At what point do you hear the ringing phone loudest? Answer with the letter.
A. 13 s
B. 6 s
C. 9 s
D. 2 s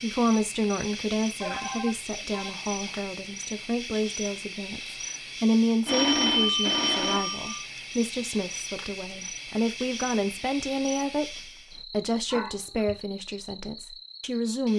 B.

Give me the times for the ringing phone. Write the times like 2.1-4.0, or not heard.
1.4-2.5, 5.8-7.7, 12.3-12.9.